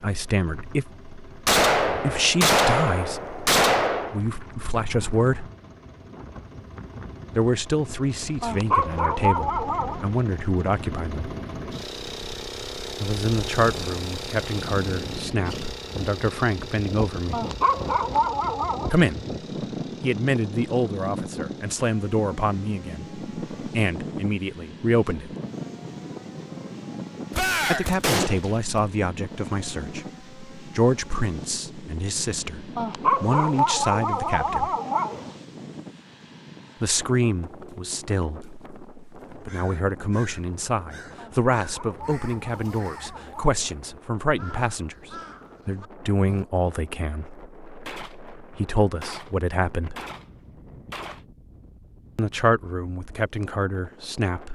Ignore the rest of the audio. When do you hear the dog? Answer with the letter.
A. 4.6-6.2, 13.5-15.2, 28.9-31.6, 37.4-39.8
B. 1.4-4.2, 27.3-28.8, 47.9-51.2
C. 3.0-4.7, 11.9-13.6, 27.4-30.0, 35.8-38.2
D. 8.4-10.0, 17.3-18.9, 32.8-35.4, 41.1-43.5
D.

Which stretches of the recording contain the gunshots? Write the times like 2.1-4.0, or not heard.
1.4-4.2, 27.3-28.8, 47.9-51.2.